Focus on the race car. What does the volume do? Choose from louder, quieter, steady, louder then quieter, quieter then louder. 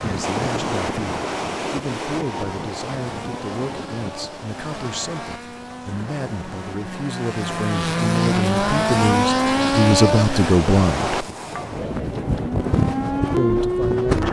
louder.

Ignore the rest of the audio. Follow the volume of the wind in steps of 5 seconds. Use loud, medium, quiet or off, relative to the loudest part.
loud, medium, loud.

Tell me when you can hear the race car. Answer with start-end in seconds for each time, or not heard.
3.0-10.6.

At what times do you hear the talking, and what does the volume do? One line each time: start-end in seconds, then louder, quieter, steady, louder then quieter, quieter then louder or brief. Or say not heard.
0.0-11.2 louder
13.3-14.2 brief.